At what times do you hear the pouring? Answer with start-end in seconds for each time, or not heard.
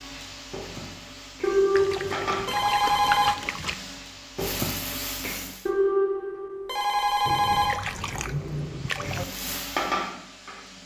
1.8-3.8, 7.2-9.2.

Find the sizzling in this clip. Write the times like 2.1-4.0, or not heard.
0.0-5.7, 8.2-10.8.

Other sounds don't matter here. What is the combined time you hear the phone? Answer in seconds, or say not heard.
4 s.